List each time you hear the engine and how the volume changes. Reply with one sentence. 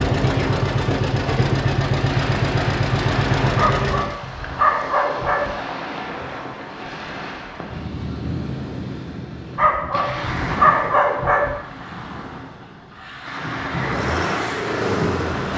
The engine can be heard from 0.0 to 4.2 s, at a steady volume; and briefly from 13.8 to 15.5 s.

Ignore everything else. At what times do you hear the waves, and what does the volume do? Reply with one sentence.
The waves can be heard from 0.0 to 15.5 s, at a steady volume.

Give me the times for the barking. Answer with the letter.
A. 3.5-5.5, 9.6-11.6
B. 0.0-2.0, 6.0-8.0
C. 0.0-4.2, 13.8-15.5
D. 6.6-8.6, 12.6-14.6
A.